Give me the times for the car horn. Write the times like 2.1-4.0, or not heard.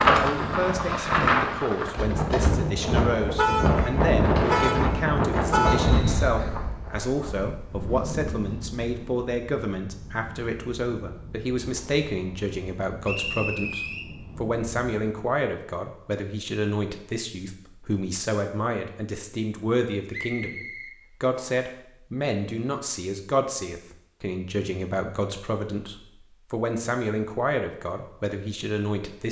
3.4-6.0.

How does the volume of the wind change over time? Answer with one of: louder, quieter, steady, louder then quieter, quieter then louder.
quieter.